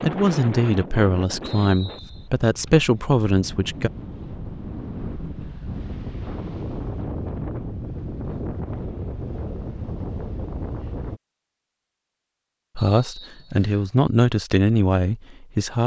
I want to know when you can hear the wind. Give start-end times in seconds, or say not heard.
0.0-11.2.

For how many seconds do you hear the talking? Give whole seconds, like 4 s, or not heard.
7 s.